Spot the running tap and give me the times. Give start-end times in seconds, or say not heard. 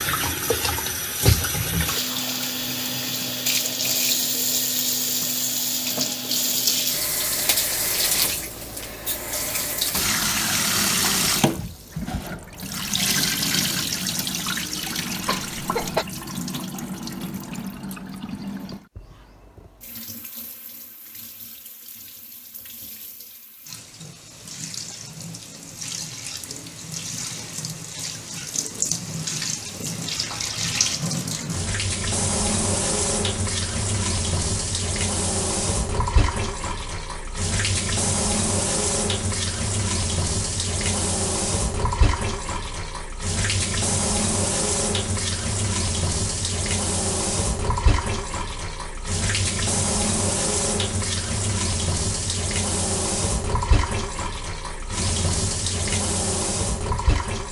0.0-57.4.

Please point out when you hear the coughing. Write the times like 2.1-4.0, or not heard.
15.2-16.1.